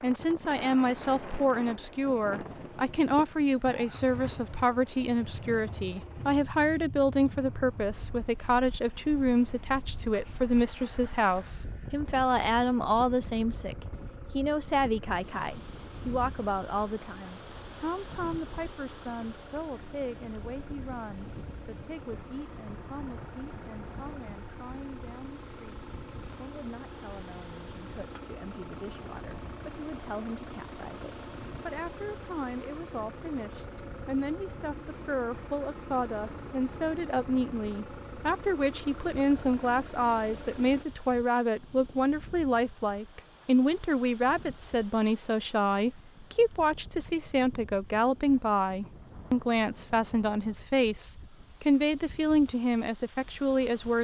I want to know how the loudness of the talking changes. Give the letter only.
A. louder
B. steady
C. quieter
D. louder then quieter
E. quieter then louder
E.